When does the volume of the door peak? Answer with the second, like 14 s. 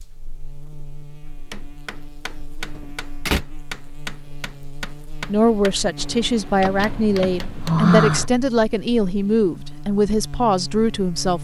8 s.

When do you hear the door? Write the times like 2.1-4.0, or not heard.
2.8-3.4, 6.6-8.2.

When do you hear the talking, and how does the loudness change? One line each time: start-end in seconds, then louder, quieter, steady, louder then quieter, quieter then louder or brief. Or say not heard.
5.2-11.3 steady.